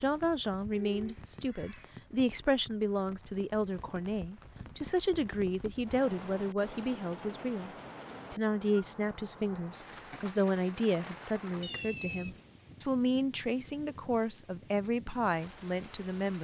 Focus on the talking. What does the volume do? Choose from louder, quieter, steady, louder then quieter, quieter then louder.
steady.